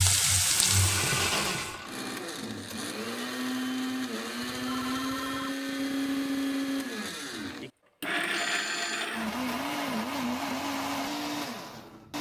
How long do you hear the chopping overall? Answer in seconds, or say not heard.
not heard.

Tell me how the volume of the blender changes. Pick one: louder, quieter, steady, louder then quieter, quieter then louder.
steady.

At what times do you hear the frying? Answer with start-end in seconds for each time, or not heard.
0.0-1.8.